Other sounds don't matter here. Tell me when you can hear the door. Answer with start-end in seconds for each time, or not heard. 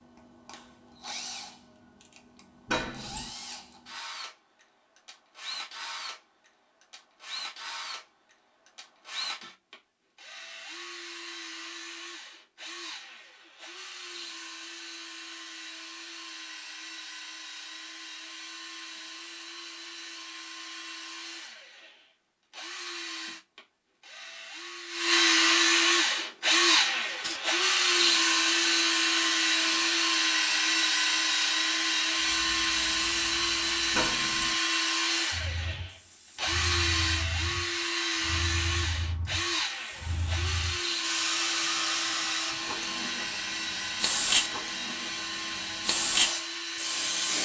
2.6-3.3, 33.9-34.5.